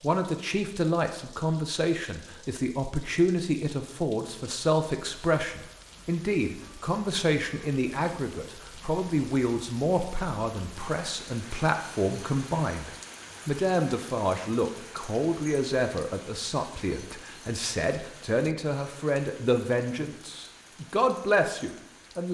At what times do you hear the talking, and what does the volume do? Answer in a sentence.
The talking can be heard from 0.0 to 22.2 s, at a steady volume.